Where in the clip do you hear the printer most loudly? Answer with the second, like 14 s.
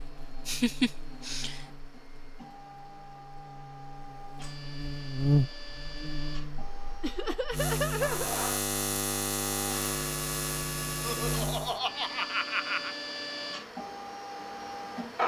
15 s.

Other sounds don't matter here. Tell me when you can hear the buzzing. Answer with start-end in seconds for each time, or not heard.
0.0-11.8.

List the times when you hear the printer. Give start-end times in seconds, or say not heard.
0.0-15.2.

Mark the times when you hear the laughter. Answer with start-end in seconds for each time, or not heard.
0.5-1.6, 7.0-8.3, 11.0-12.9.